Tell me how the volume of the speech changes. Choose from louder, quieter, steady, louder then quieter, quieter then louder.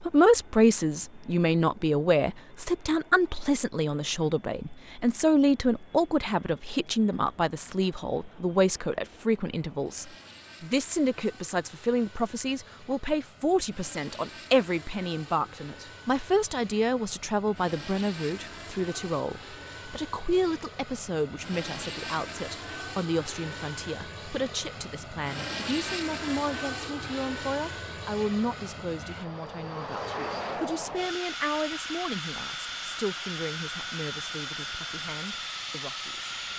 quieter.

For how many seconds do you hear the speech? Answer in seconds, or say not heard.
36 s.